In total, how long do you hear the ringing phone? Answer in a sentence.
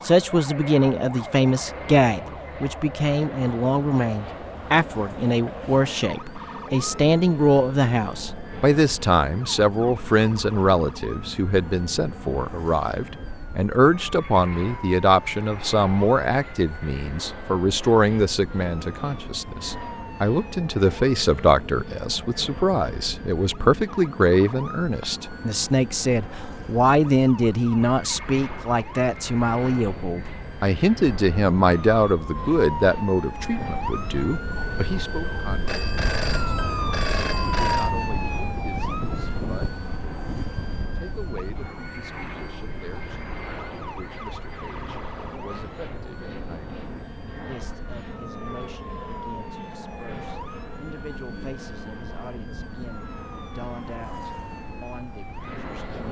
You can hear the ringing phone for 2 seconds altogether.